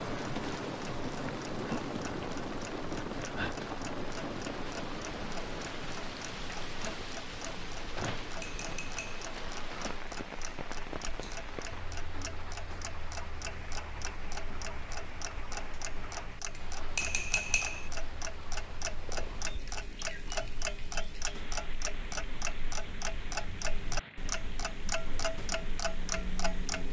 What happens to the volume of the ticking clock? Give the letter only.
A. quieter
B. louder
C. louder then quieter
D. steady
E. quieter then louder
B.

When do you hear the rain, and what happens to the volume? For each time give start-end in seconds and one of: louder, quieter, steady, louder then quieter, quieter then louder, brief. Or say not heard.
0.0-26.8 quieter.